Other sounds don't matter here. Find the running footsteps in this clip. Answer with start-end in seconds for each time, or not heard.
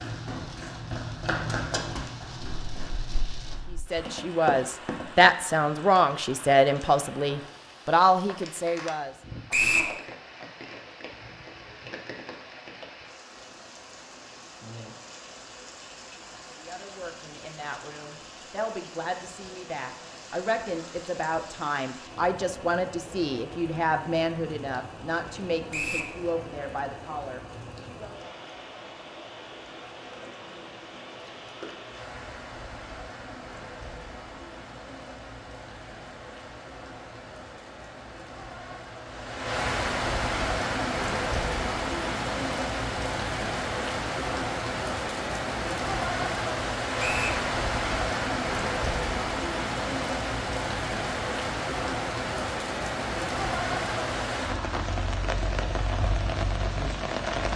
0.0-5.4.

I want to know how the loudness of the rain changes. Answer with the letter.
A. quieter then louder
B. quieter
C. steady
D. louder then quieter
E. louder
E.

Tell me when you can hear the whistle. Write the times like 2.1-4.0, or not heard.
9.5-9.9, 25.7-26.1, 47.0-47.4.